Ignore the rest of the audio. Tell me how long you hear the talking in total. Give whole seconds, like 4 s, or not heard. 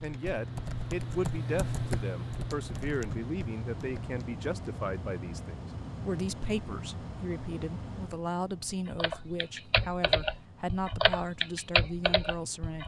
13 s.